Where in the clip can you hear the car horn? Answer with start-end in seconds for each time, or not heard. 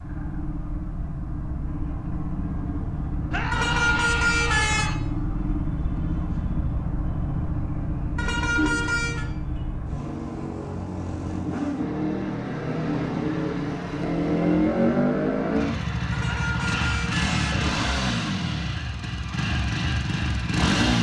3.5-4.9, 8.2-9.2, 16.1-17.8.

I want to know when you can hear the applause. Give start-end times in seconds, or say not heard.
not heard.